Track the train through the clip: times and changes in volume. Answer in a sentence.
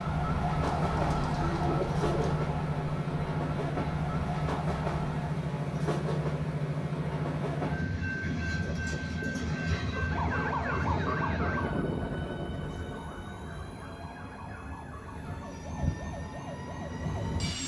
You can hear the train from 0.0 to 17.6 s, getting quieter.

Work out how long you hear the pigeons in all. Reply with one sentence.
You can hear the pigeons for 2 seconds altogether.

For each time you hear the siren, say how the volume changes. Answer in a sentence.
The siren can be heard from 0.0 to 5.3 s, getting quieter; and from 10.1 to 17.6 s, getting quieter.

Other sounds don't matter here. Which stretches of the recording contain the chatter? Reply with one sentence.
The chatter can't be heard in this clip.